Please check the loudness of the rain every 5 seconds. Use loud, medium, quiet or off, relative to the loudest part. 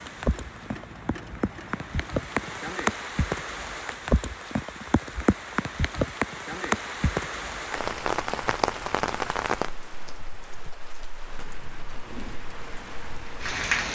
loud, loud, medium.